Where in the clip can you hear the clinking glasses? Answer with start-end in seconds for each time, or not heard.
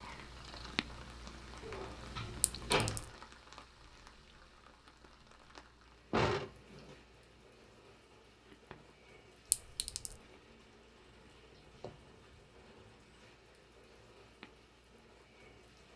2.4-3.1, 9.5-10.2.